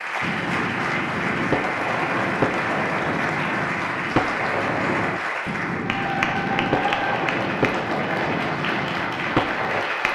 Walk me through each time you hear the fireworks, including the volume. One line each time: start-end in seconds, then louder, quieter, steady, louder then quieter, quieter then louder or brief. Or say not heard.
0.2-9.8 steady.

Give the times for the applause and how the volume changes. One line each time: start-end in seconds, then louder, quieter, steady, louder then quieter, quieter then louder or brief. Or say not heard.
0.0-10.1 steady.